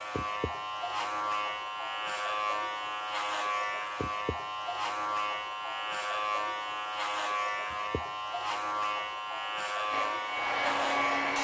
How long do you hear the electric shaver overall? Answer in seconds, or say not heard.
11 s.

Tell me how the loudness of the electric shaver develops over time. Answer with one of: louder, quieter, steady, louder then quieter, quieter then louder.
steady.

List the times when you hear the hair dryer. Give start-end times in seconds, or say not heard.
9.9-11.3.